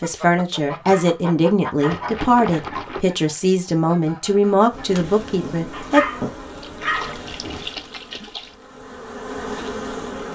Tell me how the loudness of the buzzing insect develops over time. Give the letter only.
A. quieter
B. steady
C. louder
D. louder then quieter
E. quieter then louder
E.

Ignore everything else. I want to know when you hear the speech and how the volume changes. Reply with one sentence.
You can hear the speech from 0.0 to 6.0 s, at a steady volume.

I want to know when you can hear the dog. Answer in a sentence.
You can hear the dog from 0.7 to 2.1 s and from 5.7 to 7.2 s.